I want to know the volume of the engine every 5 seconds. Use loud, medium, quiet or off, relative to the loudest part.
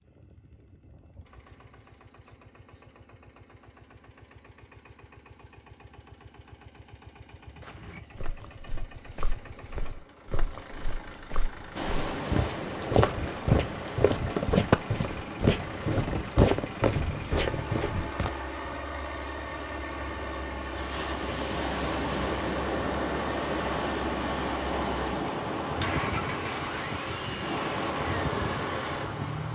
quiet, quiet, medium, loud, loud, loud.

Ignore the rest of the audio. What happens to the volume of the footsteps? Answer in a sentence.
The volume of the footsteps goes up.